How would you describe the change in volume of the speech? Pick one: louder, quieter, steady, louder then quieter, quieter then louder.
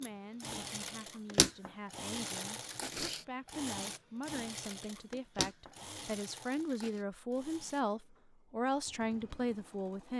louder.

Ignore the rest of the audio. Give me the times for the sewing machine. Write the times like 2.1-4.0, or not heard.
0.0-10.1.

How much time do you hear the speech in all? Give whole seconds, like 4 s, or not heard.
10 s.